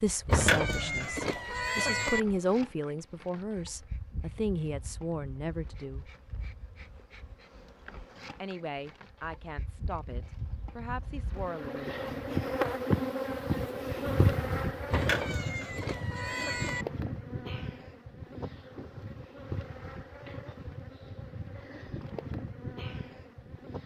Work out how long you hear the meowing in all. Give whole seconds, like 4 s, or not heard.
4 s.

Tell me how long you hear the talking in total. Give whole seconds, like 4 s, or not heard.
10 s.